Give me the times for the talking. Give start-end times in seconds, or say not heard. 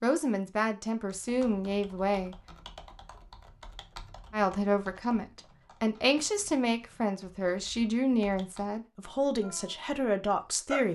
0.0-2.4, 4.3-10.9.